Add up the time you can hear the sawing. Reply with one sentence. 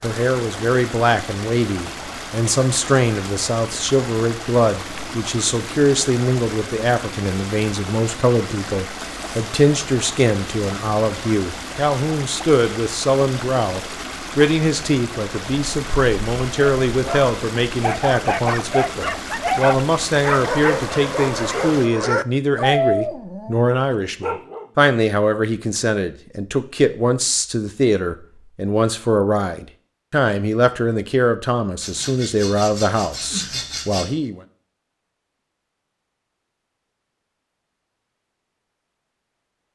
You can hear the sawing for 2 seconds altogether.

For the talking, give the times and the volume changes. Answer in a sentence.
You can hear the talking from 0.0 to 34.4 s, at a steady volume.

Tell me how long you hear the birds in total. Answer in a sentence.
You can't hear the birds here.